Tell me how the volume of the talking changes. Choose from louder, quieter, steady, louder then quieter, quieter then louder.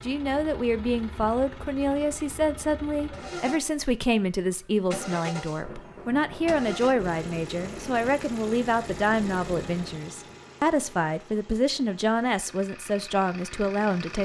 steady.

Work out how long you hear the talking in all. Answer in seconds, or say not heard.
14 s.